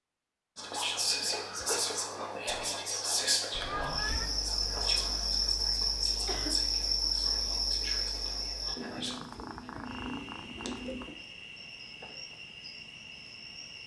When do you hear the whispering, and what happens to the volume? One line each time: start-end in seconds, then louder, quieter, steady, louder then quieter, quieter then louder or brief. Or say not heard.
0.6-9.2 quieter.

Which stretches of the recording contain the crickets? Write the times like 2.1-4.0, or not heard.
3.8-13.8.